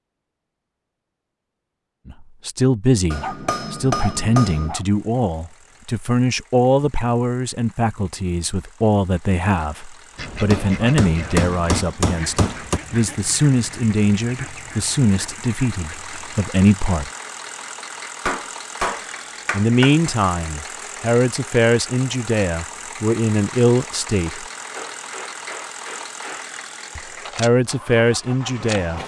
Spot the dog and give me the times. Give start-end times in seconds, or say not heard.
3.2-4.8.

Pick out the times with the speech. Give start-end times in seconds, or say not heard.
2.0-17.1, 19.5-24.4, 26.9-29.0.